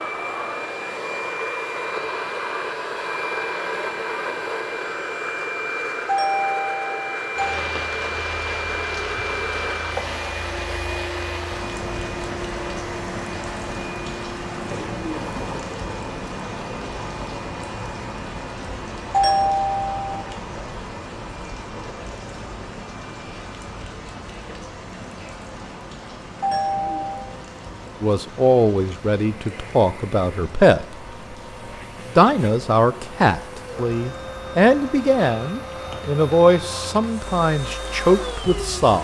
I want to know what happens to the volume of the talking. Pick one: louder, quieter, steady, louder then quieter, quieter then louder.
steady.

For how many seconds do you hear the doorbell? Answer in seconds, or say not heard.
4 s.